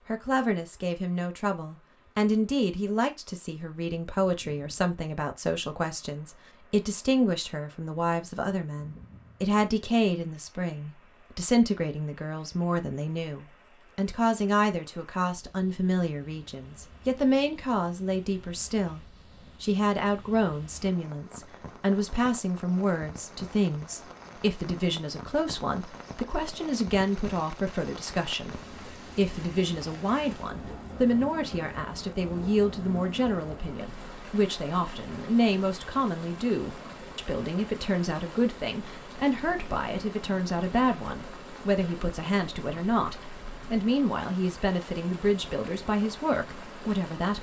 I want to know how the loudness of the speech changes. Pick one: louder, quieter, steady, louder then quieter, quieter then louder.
steady.